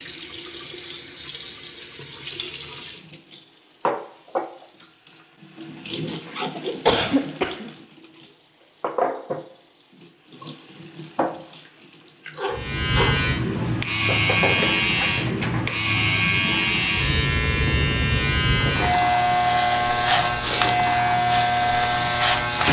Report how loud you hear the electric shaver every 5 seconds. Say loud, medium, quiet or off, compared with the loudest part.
off, off, loud, loud, loud.